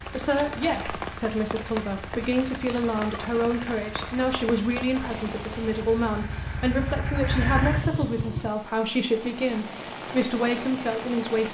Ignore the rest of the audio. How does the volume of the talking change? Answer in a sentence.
The loudness of the talking stays about the same.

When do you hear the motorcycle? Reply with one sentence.
You can hear the motorcycle from 0.0 to 8.5 s.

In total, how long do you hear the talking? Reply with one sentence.
You can hear the talking for 11 seconds altogether.